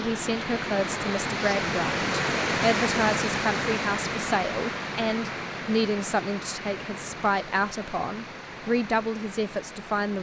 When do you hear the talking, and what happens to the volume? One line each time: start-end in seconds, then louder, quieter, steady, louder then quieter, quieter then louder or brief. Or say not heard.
0.0-10.1 steady.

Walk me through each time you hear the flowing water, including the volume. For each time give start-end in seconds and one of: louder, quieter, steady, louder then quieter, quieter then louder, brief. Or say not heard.
0.0-10.1 quieter.